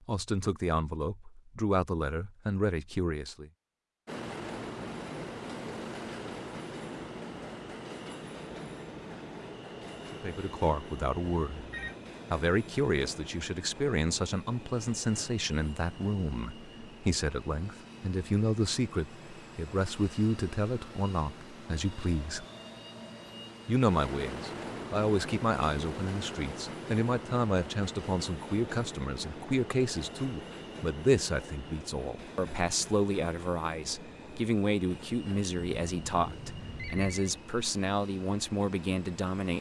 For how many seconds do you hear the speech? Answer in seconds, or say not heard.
31 s.